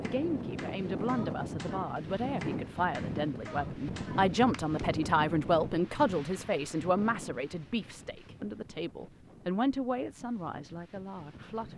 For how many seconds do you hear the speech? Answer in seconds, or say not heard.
12 s.